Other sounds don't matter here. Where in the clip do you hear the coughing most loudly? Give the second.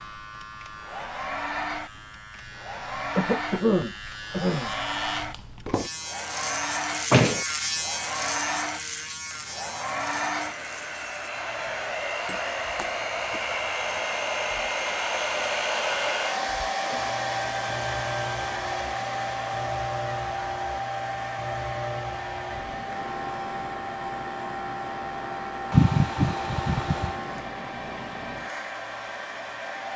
26 s.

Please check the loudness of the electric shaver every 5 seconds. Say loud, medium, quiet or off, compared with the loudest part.
medium, loud, medium, medium, medium, medium.